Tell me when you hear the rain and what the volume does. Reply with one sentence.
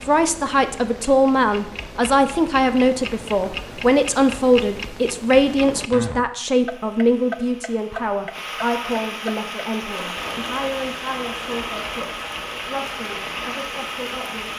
The rain can be heard from 6.5 to 14.5 s, getting louder.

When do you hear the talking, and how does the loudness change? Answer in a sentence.
You can hear the talking from 0.1 to 14.5 s, getting quieter.